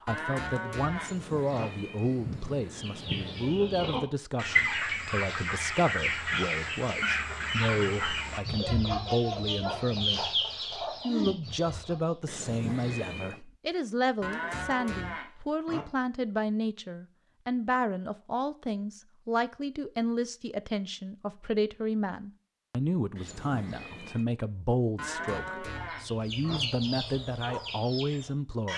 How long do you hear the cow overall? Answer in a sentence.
You can hear the cow for 5 seconds altogether.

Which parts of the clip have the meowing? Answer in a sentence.
The meowing can be heard from 0.9 to 3.7 s, from 12.2 to 13.4 s and from 23.1 to 24.2 s.